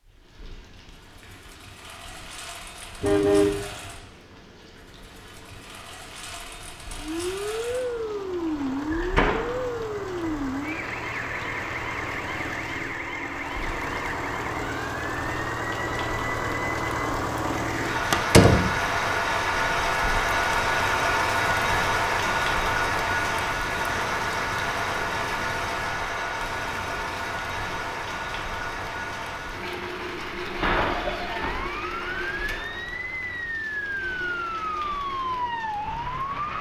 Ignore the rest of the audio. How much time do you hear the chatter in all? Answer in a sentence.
The chatter can't be heard in this clip.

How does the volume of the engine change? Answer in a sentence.
The loudness of the engine goes up, then down.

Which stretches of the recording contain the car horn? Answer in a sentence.
The car horn can be heard from 3.0 to 3.6 s.